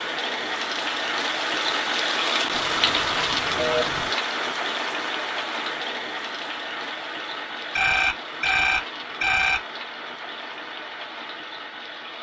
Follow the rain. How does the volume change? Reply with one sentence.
The volume of the rain goes down.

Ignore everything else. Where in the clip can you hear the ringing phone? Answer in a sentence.
You can hear the ringing phone from 2.5 to 4.1 s and from 7.8 to 9.6 s.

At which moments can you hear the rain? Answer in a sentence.
You can hear the rain from 0.0 to 12.1 s.